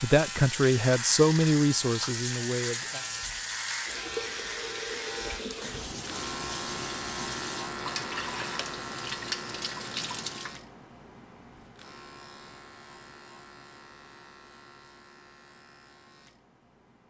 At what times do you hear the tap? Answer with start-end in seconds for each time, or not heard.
0.0-10.6.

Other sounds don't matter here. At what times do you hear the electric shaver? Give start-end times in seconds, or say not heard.
0.0-17.0.